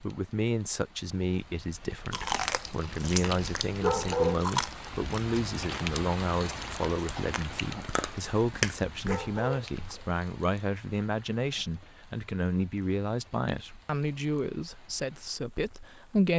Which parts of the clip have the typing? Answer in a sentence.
You can't hear the typing here.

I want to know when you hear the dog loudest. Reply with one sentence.
The volume of the dog peaks at 4 seconds.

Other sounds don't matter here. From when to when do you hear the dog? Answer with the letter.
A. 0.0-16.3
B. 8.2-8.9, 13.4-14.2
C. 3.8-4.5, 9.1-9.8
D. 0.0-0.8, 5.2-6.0
C.